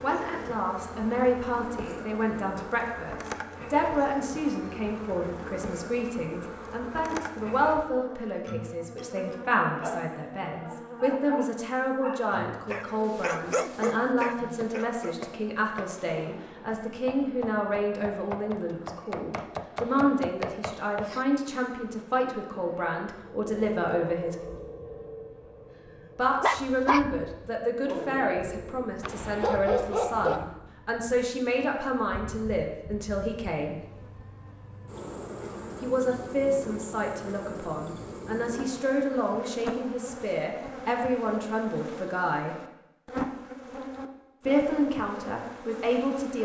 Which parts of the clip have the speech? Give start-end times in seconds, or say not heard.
0.0-24.4, 26.1-33.8, 35.8-42.5, 44.5-46.3.